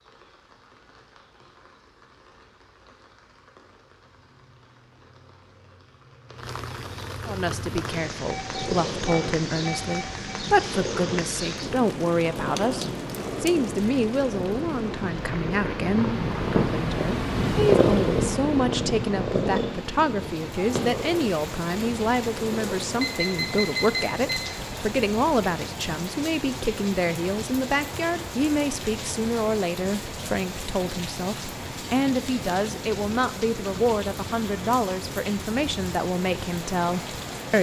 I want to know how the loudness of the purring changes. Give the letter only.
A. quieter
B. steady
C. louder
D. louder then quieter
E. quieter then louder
D.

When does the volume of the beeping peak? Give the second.
24 s.